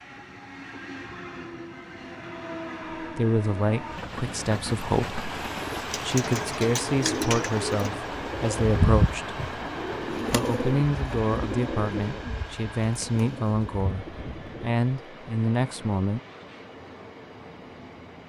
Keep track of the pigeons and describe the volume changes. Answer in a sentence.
The volume of the pigeons goes down.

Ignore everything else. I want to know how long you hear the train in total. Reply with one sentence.
The train can be heard for 18 seconds in total.